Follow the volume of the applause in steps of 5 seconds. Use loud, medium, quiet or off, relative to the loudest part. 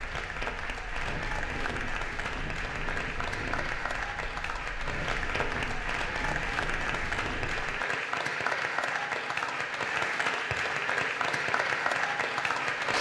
medium, loud, loud.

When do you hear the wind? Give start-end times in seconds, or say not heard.
0.0-7.8.